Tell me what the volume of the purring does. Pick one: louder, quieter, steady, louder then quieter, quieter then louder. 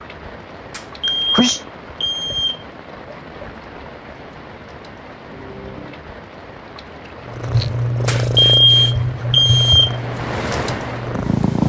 quieter.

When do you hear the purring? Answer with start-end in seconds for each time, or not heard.
7.2-11.6.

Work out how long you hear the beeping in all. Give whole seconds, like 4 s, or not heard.
4 s.